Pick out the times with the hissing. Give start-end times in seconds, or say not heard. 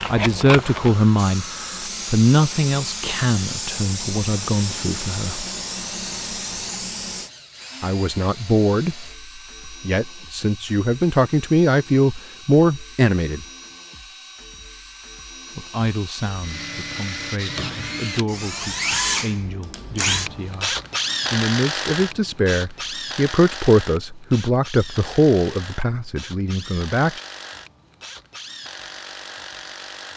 0.0-7.3.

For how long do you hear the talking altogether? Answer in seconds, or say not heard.
23 s.